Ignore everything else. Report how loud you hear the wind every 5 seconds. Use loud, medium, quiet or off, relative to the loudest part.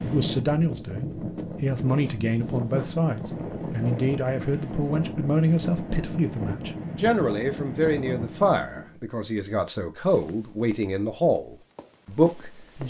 loud, loud, off.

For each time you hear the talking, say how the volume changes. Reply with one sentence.
The talking can be heard from 0.1 to 12.8 s, at a steady volume.